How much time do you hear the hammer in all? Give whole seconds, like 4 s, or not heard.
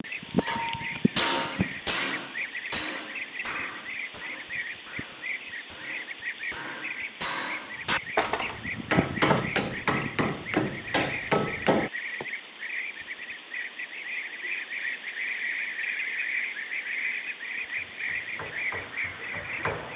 14 s.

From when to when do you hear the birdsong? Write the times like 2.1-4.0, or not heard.
0.0-19.9.